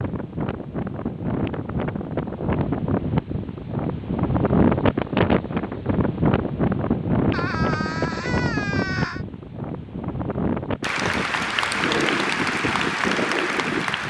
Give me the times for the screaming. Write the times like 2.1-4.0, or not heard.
7.3-9.2.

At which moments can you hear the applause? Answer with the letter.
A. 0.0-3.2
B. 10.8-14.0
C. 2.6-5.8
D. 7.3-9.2
B.